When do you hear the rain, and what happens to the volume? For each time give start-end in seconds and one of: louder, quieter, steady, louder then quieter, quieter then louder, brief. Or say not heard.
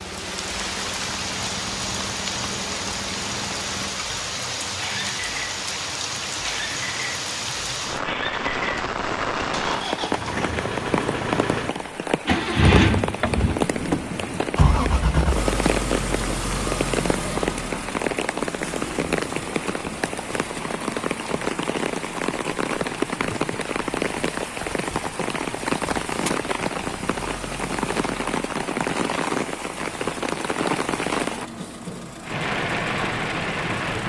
0.0-34.0 steady.